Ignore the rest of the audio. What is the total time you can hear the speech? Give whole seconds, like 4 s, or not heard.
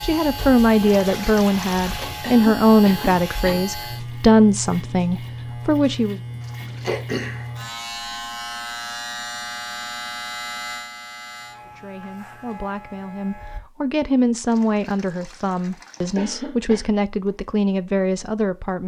13 s.